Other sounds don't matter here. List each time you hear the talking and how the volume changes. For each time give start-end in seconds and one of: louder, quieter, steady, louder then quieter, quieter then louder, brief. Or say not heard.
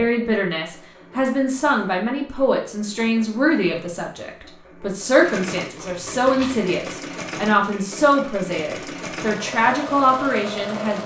0.0-11.0 steady.